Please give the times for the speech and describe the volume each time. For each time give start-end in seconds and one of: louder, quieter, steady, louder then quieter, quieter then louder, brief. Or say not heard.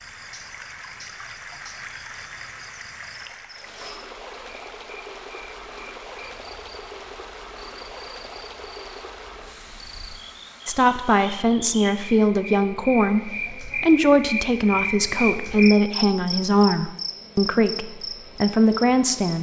10.7-19.3 steady.